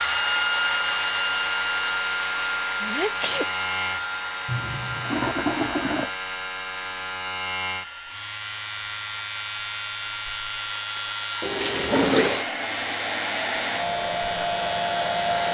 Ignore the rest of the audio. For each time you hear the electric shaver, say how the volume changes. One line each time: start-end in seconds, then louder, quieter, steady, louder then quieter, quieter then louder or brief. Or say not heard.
0.0-15.4 steady.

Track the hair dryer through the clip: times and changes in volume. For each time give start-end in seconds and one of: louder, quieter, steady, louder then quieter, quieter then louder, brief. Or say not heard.
0.0-15.4 quieter then louder.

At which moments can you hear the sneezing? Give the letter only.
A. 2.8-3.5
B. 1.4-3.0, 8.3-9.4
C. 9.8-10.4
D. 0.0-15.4
A.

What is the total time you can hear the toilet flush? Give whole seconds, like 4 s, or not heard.
3 s.